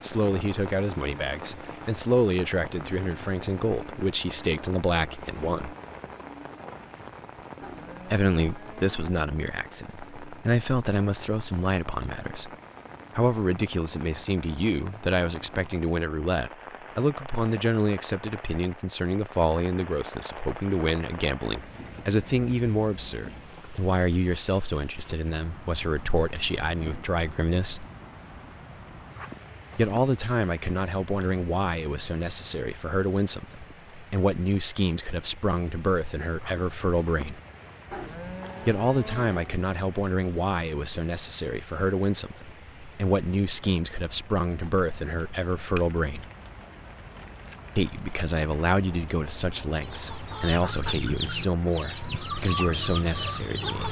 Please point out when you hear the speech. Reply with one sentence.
The speech can be heard from 0.0 to 5.8 s, from 8.1 to 12.5 s, from 13.2 to 27.9 s, from 29.8 to 37.4 s, from 38.6 to 46.2 s and from 47.8 to 53.8 s.